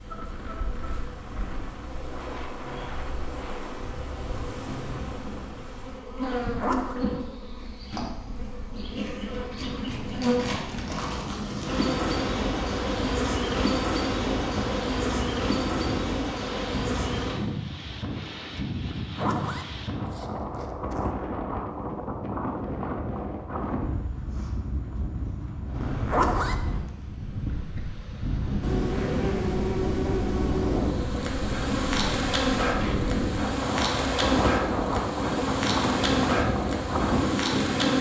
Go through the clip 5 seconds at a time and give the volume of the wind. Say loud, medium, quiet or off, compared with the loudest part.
quiet, quiet, medium, medium, medium, medium, loud, loud.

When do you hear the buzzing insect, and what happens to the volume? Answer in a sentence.
You can hear the buzzing insect from 0.0 to 17.4 s, getting louder; and from 28.6 to 37.9 s, at a steady volume.